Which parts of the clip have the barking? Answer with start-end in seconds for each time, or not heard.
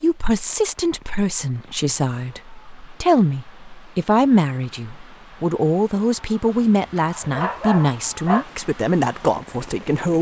6.5-8.4.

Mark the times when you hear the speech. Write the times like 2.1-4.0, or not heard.
0.0-10.1.